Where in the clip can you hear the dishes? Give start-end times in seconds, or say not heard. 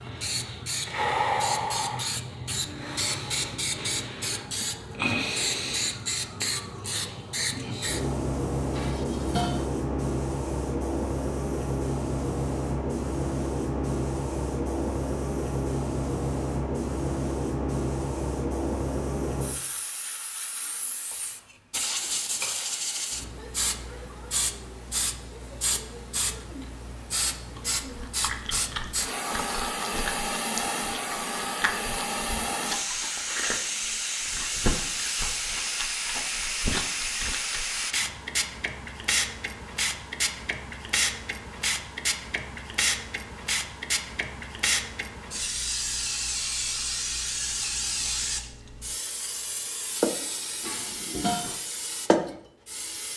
8.7-9.7, 21.1-22.6, 29.3-29.8, 50.6-51.5.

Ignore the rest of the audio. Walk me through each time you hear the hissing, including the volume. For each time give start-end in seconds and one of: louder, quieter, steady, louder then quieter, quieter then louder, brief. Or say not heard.
0.0-53.1 steady.